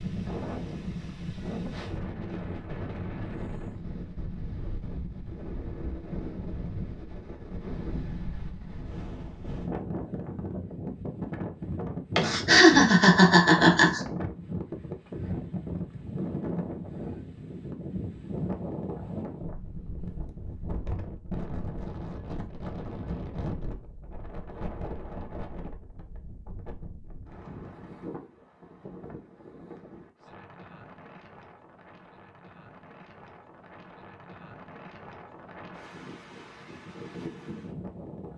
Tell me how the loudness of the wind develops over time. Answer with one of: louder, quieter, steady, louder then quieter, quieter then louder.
quieter.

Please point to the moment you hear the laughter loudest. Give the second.
13 s.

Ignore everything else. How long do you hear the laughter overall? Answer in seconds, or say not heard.
2 s.